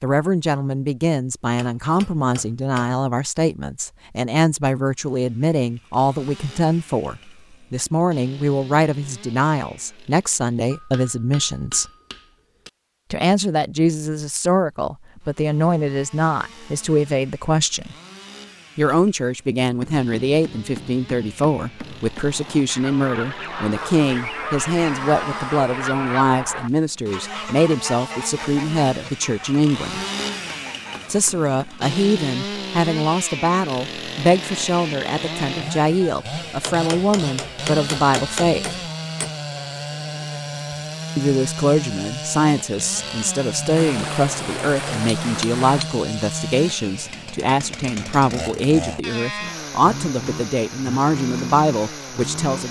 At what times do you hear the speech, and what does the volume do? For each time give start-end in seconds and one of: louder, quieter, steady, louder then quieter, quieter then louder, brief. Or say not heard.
0.0-11.8 steady
13.1-17.9 steady
18.8-30.0 steady
31.1-38.8 steady
41.1-52.6 steady.